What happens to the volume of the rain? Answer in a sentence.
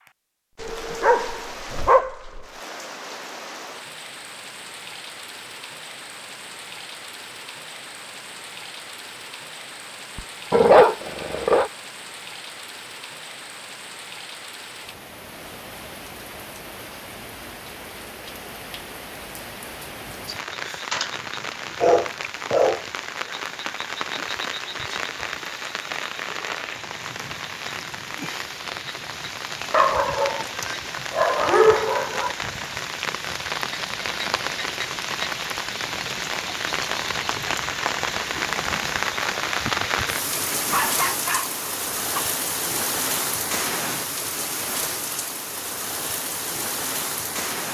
The loudness of the rain goes up.